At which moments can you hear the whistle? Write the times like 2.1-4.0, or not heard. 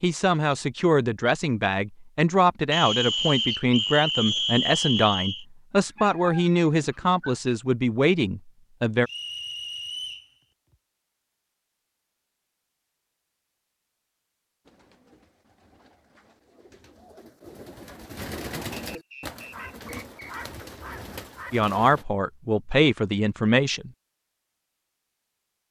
2.7-5.5, 9.1-10.3, 18.9-20.4.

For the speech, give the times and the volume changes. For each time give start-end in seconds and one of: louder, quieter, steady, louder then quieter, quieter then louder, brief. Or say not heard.
0.0-9.1 steady
21.5-23.9 brief.